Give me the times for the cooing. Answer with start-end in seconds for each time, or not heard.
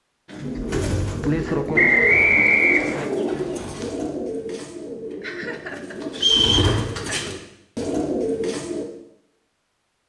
0.2-8.8.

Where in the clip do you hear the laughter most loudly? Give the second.
1 s.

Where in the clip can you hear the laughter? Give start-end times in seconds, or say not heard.
0.6-1.8, 5.2-7.3.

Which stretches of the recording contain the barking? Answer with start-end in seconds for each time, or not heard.
not heard.